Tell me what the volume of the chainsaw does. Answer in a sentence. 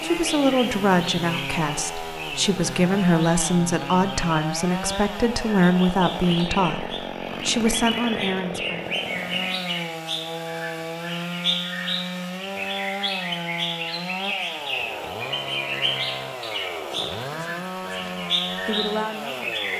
The volume of the chainsaw stays about the same.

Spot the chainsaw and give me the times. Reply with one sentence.
You can hear the chainsaw from 0.0 to 19.7 s.